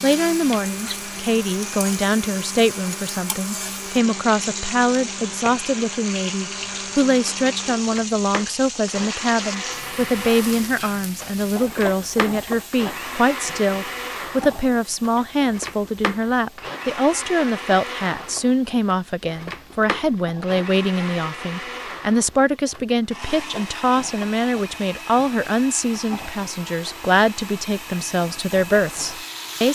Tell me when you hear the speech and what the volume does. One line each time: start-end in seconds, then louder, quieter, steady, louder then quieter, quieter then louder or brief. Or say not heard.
0.0-29.7 steady.